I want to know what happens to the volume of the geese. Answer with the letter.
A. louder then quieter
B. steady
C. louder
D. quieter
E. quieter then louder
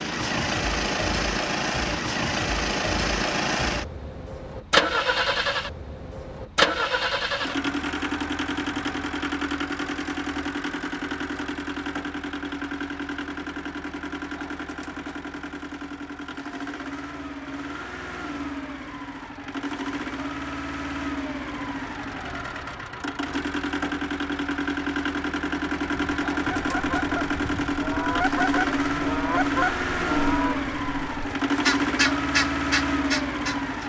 C.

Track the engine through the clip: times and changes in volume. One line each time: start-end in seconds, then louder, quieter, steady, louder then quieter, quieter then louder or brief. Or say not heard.
0.0-33.8 quieter then louder.